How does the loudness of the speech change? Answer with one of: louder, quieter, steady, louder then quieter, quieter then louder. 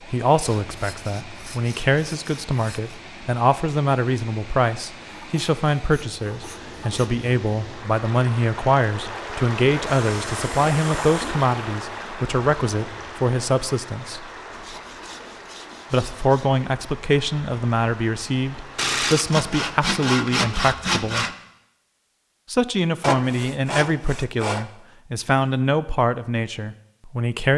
steady.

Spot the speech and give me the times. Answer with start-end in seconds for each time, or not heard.
0.1-14.2, 15.9-21.2, 22.5-27.5.